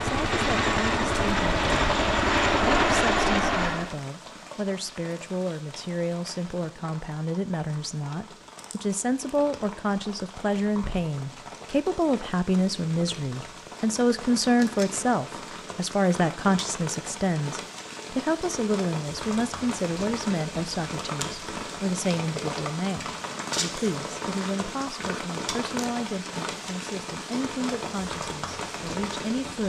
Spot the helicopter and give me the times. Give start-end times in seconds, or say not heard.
0.0-4.0.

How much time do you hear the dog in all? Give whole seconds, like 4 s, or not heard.
not heard.